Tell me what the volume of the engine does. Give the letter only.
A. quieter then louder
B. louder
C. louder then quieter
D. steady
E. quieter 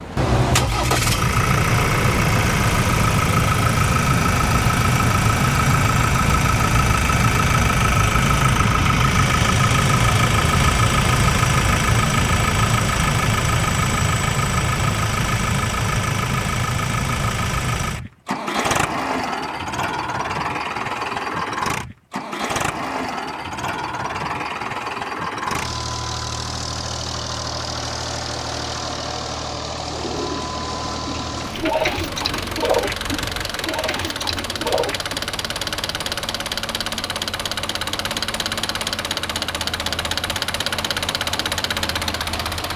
E.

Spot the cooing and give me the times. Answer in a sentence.
The cooing can be heard from 29.9 to 35.2 s.